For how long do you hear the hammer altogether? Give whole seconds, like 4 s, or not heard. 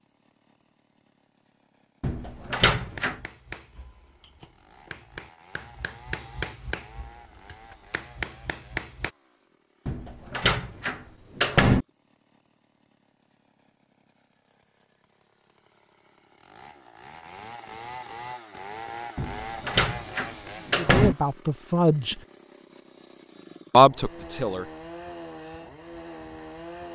6 s.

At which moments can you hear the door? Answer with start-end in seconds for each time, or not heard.
2.0-3.2, 9.8-11.8, 19.1-21.1.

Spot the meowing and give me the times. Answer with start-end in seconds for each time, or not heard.
not heard.